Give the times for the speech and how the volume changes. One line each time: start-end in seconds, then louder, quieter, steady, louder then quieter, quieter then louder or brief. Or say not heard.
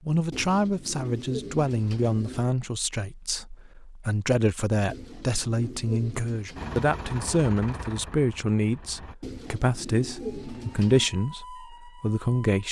0.1-12.6 steady.